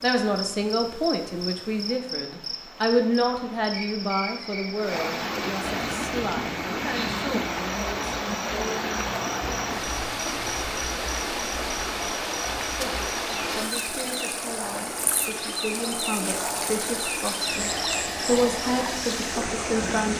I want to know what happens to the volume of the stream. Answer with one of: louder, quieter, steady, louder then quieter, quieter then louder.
louder.